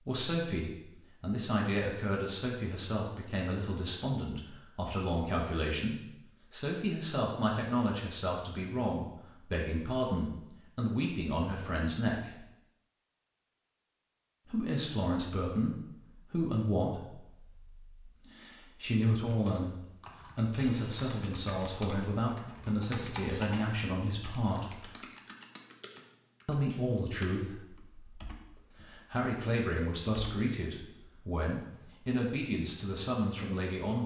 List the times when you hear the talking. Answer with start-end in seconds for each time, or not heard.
0.0-12.4, 14.4-24.9, 26.4-34.0.